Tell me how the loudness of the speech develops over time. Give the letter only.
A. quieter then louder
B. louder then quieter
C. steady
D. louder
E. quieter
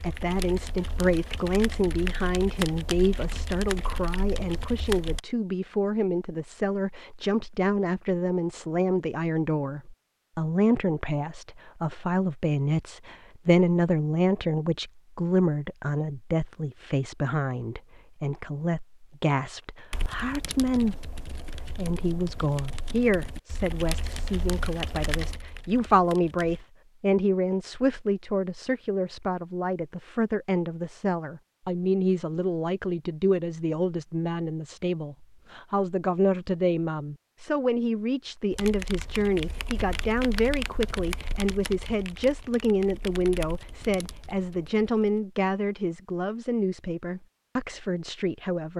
C.